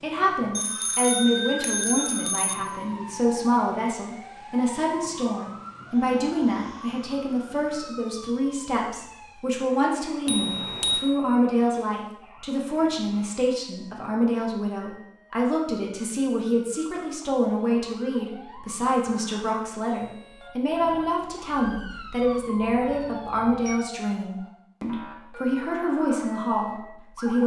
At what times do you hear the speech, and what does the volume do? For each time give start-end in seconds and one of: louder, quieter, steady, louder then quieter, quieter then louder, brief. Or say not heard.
0.0-27.4 steady.